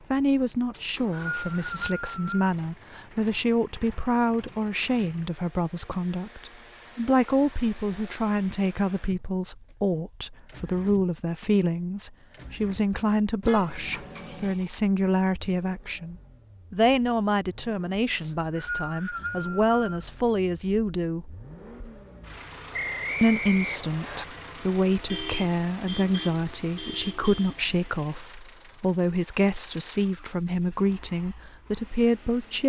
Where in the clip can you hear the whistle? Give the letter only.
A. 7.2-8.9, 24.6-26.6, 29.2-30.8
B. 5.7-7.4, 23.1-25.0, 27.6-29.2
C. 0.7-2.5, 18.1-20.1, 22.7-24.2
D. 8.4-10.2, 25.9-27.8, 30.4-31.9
C.